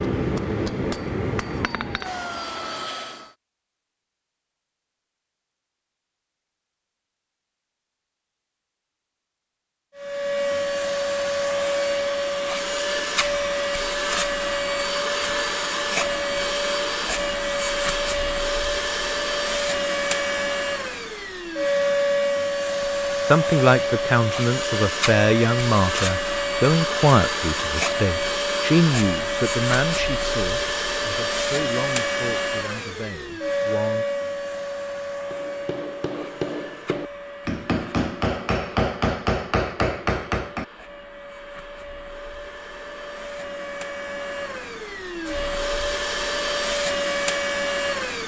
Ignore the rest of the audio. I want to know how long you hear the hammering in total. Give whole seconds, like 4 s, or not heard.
8 s.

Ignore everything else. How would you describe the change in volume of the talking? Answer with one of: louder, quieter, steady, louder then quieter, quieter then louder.
quieter.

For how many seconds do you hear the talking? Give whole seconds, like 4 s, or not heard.
11 s.